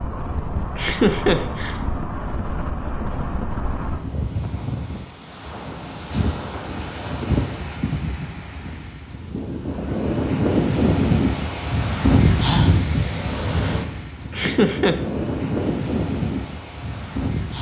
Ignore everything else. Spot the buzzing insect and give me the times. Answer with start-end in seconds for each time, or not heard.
not heard.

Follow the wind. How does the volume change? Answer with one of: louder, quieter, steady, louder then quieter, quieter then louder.
louder then quieter.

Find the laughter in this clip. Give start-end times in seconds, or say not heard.
0.8-1.8, 14.3-15.0.